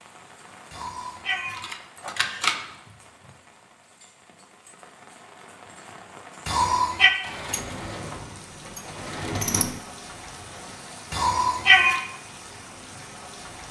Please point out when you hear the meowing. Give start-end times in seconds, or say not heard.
0.7-2.5, 6.5-7.1, 11.1-12.0.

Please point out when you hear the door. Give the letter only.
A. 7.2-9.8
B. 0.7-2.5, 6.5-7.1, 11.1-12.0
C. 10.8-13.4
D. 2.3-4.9
A.